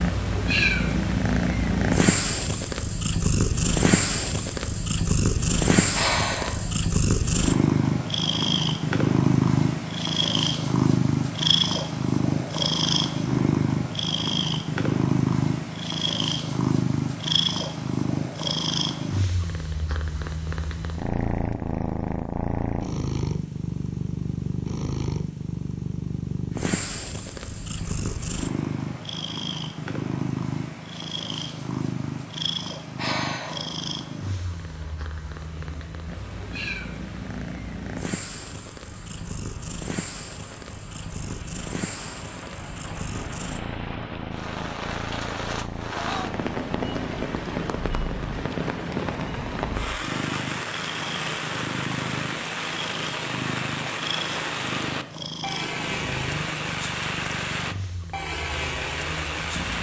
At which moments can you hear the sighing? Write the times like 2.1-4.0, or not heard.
5.9-6.7, 33.0-33.7.